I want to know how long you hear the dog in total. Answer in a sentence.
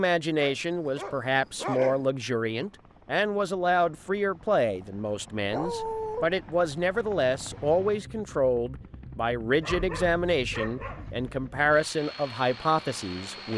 You can hear the dog for 4 seconds altogether.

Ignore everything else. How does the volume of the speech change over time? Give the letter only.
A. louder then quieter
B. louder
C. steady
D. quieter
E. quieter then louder
C.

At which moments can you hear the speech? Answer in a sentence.
You can hear the speech from 0.0 to 13.5 s.